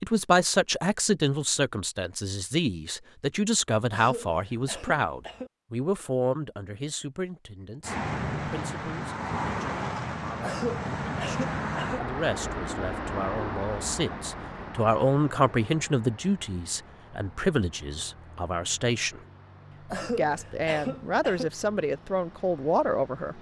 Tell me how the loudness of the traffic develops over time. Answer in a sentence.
The loudness of the traffic goes down.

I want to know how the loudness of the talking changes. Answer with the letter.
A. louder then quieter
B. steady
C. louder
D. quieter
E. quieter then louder
E.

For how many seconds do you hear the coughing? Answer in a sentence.
The coughing can be heard for 5 seconds in total.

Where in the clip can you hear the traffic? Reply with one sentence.
You can hear the traffic from 7.8 to 23.3 s.